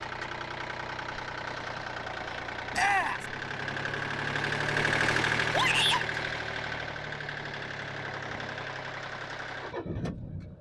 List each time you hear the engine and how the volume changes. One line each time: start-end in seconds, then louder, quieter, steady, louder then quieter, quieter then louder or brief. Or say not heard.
0.0-10.5 louder then quieter.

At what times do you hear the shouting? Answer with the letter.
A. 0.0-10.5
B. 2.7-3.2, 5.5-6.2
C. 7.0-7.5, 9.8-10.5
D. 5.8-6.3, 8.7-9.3
B.